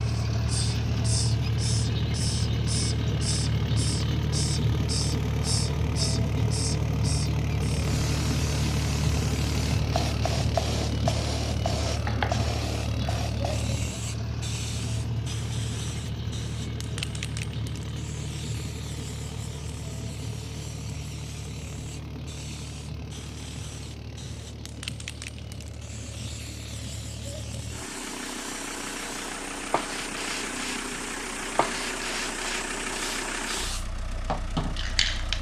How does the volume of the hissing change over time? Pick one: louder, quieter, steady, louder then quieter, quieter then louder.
quieter then louder.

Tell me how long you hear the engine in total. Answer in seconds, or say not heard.
35 s.